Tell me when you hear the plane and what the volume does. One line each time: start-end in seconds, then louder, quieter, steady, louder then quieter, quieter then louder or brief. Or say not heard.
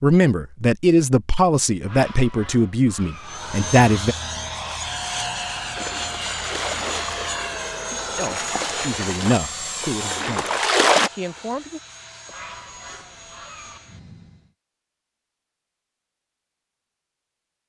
3.1-14.5 quieter.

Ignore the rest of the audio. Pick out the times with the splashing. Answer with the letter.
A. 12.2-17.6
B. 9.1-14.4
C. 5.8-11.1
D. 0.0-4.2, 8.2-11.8
C.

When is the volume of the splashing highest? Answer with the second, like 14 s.
11 s.